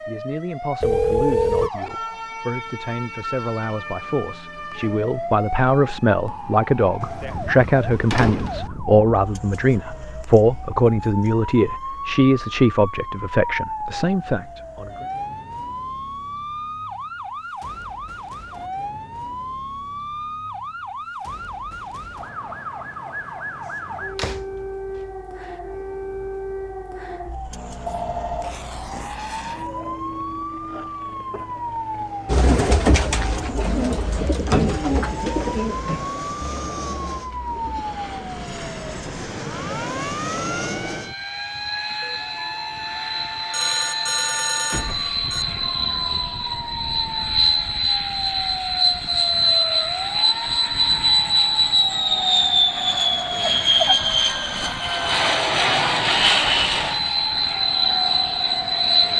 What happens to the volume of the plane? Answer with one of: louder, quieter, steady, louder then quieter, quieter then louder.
louder.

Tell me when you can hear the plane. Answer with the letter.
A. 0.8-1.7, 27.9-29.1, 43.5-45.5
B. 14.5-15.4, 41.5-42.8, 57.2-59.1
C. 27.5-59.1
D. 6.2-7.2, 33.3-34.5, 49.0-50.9
C.